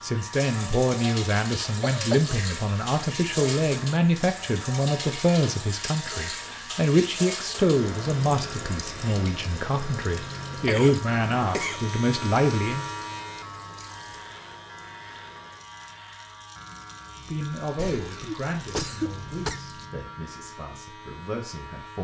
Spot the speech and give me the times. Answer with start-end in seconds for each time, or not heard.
0.0-12.8, 17.2-21.9.